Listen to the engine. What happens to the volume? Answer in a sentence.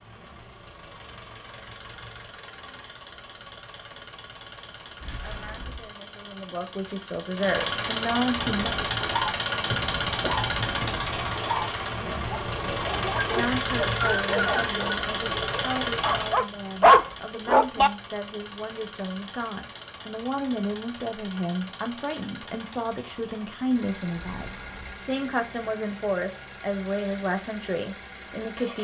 The volume of the engine goes up, then down.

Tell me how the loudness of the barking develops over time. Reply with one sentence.
The volume of the barking goes up.